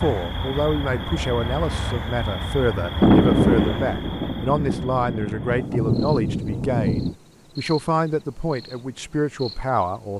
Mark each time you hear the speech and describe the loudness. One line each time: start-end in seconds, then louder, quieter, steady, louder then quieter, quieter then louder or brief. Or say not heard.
0.0-10.1 steady.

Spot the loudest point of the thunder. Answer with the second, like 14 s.
3 s.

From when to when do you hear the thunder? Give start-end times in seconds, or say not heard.
3.0-7.2.